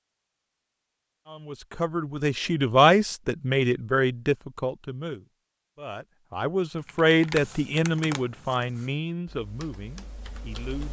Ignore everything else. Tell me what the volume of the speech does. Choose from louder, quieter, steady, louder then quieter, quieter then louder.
quieter.